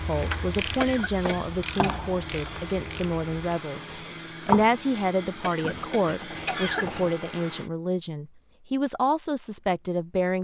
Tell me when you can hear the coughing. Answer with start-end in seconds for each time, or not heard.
0.8-2.0, 5.4-6.8.